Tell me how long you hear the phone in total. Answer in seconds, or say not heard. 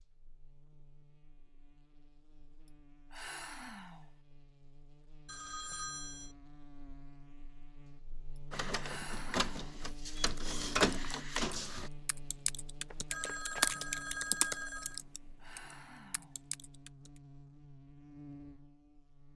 3 s.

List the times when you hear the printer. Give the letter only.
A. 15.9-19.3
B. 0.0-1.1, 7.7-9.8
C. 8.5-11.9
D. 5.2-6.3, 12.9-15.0
C.